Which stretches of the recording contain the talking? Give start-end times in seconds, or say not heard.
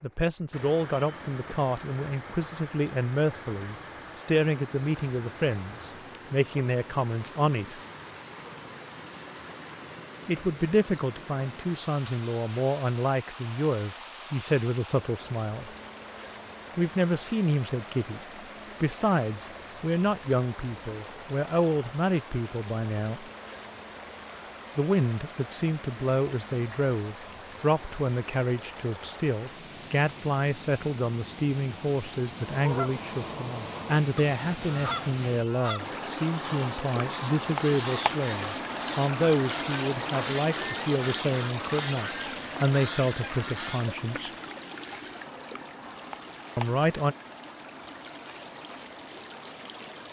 0.0-7.8, 10.2-15.7, 16.8-18.2, 18.8-23.2, 24.8-44.3, 46.5-47.1.